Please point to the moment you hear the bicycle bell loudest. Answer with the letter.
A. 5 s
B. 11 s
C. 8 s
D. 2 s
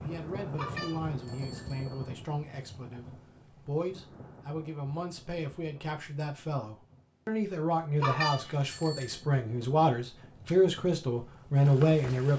C.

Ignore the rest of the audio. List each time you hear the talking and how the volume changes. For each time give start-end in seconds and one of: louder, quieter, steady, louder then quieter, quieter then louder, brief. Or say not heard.
0.0-12.3 louder.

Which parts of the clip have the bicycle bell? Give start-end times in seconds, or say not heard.
0.6-2.0, 8.0-9.2.